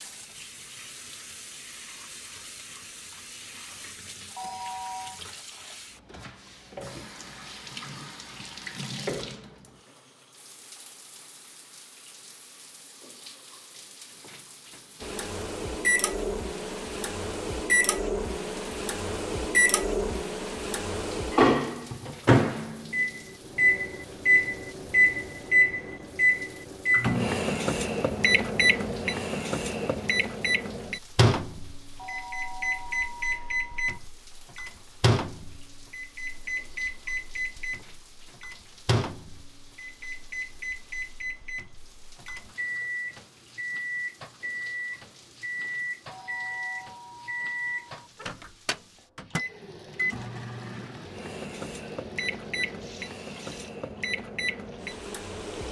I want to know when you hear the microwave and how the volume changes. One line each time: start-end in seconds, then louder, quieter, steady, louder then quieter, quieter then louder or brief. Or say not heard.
15.0-55.6 quieter.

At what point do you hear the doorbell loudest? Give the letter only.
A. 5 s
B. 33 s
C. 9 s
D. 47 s
A.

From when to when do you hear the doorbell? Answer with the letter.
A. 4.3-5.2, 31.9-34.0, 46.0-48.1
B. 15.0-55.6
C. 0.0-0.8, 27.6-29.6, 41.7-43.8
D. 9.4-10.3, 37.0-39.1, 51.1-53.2
A.